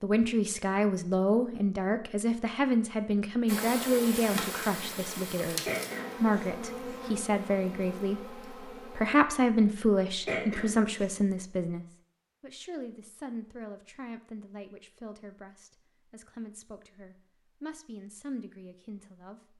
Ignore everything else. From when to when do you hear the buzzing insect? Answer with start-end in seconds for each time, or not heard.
3.5-9.2.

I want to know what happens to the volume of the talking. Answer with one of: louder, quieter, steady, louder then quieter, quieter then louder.
quieter.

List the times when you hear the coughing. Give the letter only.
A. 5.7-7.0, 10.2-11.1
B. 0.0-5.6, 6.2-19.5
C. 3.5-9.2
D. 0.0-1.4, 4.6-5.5
A.